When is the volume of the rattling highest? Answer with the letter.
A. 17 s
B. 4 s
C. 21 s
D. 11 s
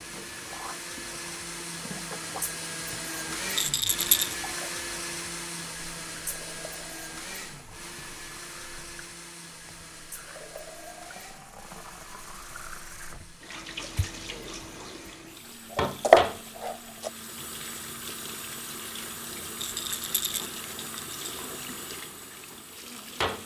B.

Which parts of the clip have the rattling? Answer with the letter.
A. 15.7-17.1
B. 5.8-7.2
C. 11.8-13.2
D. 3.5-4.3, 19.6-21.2
D.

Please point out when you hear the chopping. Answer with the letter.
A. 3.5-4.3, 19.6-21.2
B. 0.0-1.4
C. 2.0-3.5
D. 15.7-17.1
D.